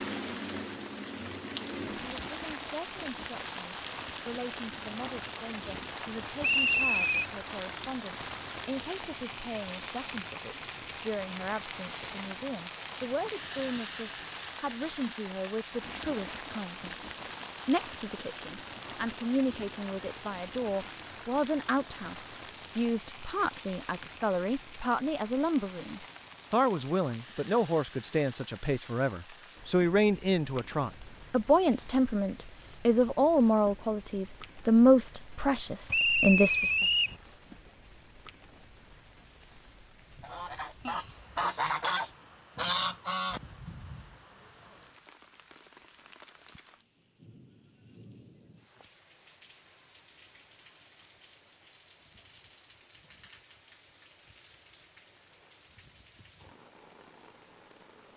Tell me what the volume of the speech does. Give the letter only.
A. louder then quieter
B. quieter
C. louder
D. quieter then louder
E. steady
C.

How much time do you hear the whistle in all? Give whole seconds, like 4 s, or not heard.
2 s.